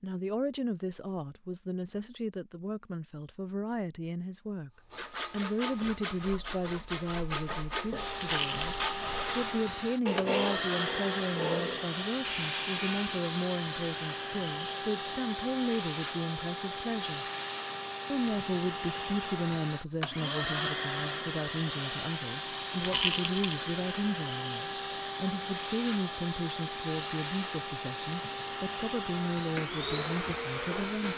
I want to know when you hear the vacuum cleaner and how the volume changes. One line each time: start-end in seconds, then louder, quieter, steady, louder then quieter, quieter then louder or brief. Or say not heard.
8.0-31.1 steady.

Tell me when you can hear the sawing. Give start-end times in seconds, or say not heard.
4.9-13.2.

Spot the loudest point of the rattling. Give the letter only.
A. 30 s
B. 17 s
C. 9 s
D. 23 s
D.